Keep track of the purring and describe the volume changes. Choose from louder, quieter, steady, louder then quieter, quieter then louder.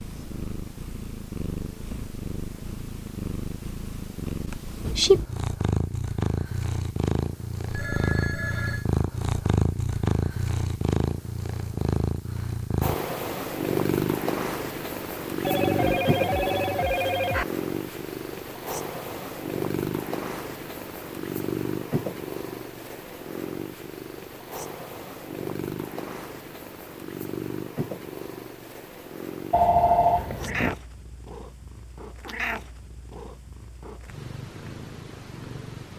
quieter.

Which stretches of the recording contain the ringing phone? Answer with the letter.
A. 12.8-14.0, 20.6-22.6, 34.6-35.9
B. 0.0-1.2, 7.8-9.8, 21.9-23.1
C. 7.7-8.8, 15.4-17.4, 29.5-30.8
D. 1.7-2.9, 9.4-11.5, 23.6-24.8
C.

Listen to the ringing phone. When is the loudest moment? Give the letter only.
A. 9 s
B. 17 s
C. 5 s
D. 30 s
D.